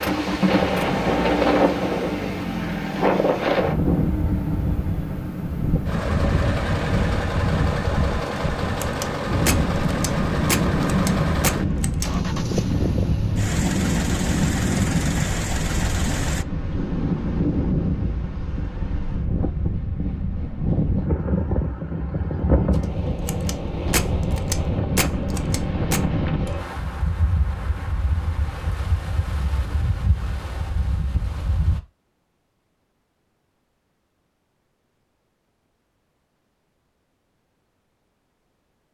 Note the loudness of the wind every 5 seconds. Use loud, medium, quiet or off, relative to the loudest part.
loud, loud, loud, loud, loud, medium, medium, off.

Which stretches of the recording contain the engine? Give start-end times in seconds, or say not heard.
0.0-16.4.